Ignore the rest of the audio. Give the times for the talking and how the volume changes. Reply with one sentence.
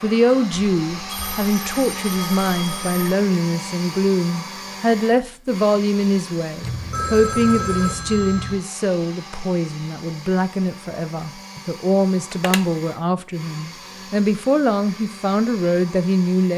The talking can be heard from 0.0 to 16.5 s, at a steady volume.